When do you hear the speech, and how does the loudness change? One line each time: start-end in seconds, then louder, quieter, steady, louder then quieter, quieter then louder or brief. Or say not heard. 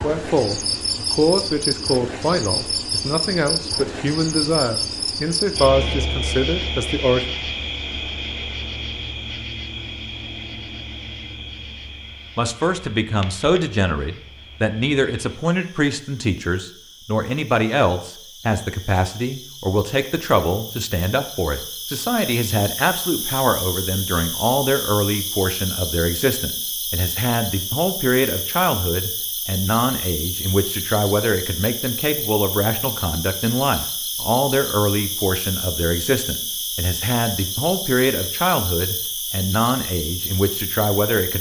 0.0-7.3 steady
12.3-41.3 steady.